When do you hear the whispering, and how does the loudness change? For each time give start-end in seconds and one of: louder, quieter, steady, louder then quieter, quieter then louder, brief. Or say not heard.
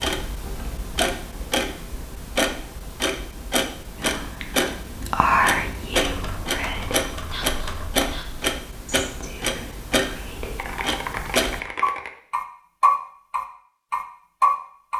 4.0-10.8 quieter.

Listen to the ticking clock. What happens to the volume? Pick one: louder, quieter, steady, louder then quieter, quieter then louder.
louder.